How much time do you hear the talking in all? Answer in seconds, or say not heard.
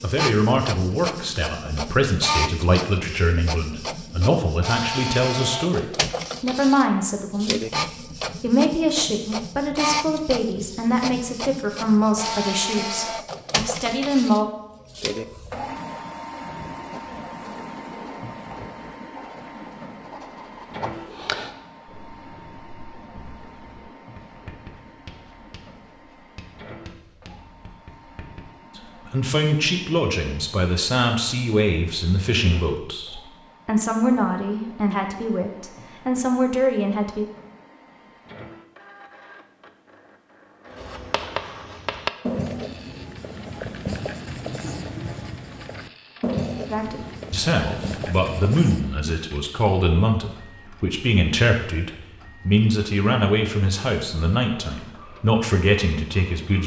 32 s.